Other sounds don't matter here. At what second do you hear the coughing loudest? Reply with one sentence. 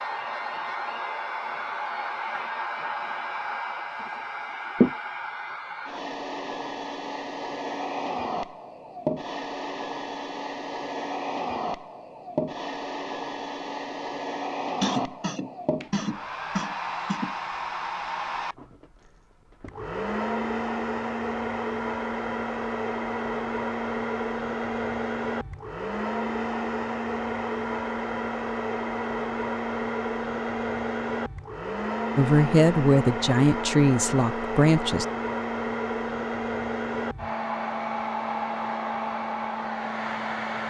The volume of the coughing peaks at 15 seconds.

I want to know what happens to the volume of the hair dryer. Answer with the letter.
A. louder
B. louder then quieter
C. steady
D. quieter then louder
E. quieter
C.